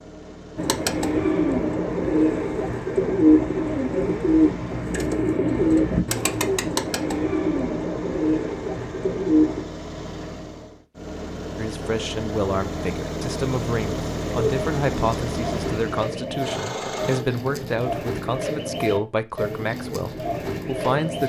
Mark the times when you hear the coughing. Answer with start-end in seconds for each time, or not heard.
not heard.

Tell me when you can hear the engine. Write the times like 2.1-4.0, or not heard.
0.0-17.2.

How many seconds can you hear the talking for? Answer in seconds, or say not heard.
10 s.